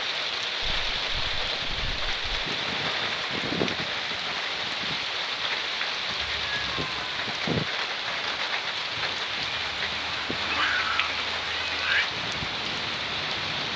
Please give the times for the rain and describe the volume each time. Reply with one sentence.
The rain can be heard from 0.0 to 13.7 s, at a steady volume.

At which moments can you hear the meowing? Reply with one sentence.
You can hear the meowing from 0.6 to 2.5 s, from 6.2 to 7.2 s and from 9.4 to 12.1 s.